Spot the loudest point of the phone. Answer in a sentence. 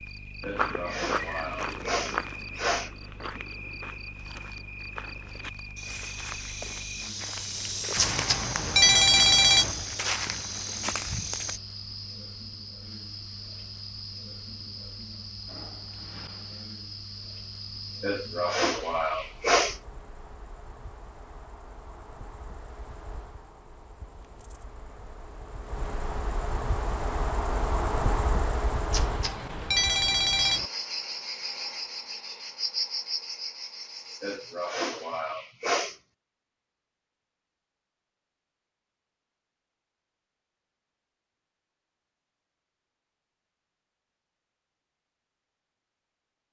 The volume of the phone peaks at 9 seconds.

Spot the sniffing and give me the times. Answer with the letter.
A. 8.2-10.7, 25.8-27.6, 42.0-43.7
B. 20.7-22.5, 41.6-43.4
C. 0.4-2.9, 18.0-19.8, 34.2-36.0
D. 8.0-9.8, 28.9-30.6
C.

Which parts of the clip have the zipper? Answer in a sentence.
You can't hear the zipper here.